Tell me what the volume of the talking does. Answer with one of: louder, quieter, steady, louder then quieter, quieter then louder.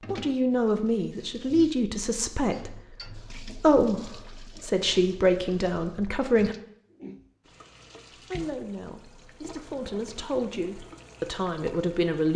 quieter then louder.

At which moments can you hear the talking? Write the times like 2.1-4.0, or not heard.
0.1-6.5, 8.3-12.3.